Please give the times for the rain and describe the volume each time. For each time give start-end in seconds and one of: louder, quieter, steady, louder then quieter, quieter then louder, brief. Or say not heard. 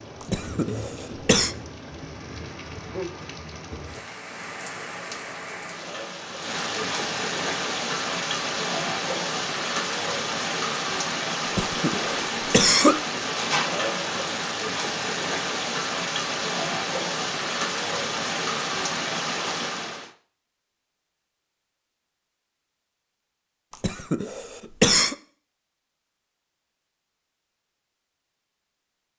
0.0-20.1 louder.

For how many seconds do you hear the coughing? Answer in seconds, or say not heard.
4 s.